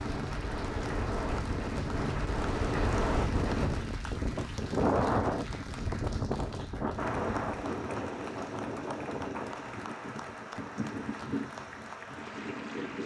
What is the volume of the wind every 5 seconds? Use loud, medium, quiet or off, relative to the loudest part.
loud, loud, medium.